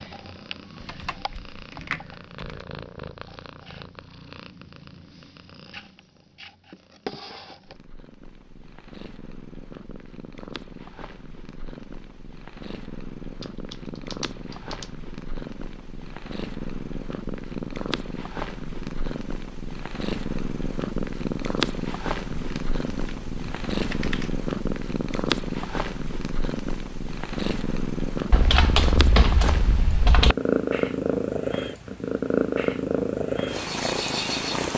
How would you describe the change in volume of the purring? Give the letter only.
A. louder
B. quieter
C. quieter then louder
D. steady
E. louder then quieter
A.